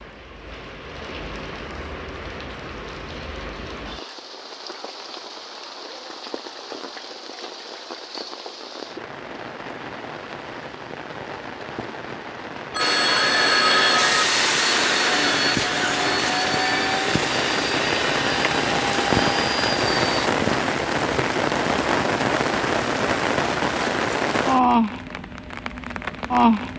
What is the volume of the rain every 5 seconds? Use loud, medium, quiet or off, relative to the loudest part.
quiet, quiet, quiet, loud, loud, loud.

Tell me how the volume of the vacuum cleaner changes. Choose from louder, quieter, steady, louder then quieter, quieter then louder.
quieter.